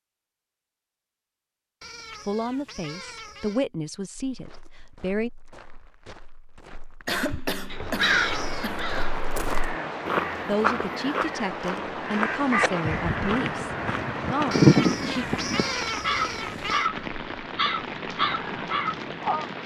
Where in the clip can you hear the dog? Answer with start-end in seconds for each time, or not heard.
not heard.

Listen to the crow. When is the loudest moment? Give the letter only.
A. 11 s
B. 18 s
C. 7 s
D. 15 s
D.